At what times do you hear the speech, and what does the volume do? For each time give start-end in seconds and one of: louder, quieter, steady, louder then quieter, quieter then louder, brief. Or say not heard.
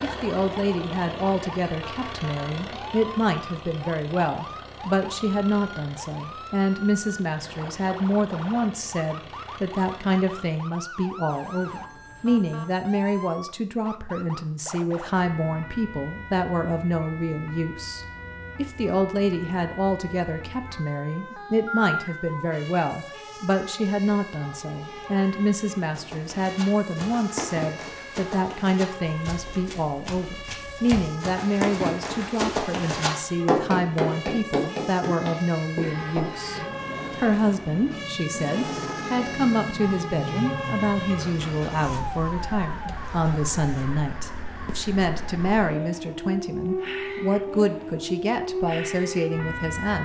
0.0-50.0 steady.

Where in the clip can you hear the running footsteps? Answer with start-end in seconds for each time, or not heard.
25.9-36.6.